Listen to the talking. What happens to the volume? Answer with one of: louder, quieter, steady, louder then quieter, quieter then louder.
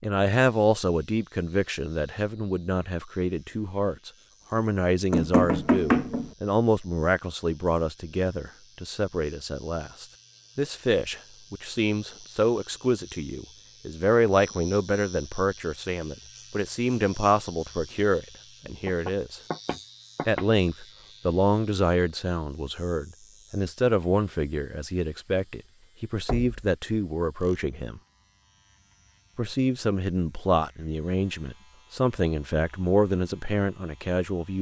steady.